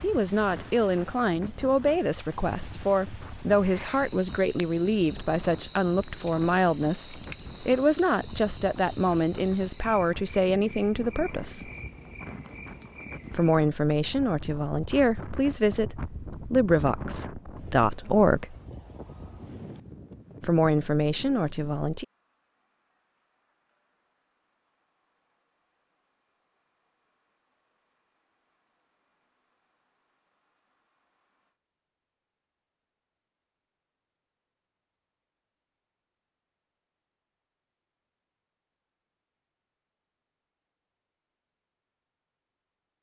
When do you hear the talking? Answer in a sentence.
You can hear the talking from 0.0 to 11.7 s, from 13.3 to 18.6 s and from 20.4 to 22.1 s.